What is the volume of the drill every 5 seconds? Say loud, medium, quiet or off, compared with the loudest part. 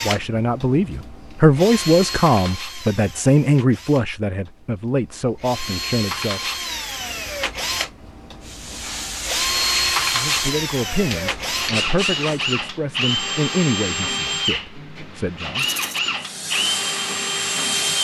medium, loud, loud, loud.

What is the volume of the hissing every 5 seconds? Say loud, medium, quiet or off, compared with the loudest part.
off, loud, loud, loud.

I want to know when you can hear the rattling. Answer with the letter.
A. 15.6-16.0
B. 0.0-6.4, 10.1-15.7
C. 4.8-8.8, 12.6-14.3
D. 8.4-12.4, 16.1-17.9
A.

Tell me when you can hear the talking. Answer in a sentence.
You can hear the talking from 0.0 to 6.4 s and from 10.1 to 15.7 s.